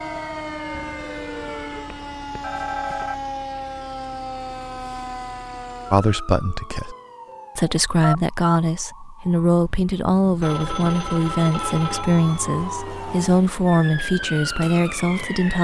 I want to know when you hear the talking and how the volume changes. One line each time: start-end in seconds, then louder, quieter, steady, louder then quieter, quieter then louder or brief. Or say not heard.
5.9-7.0 brief
7.5-15.5 steady.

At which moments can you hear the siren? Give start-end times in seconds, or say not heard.
0.0-15.5.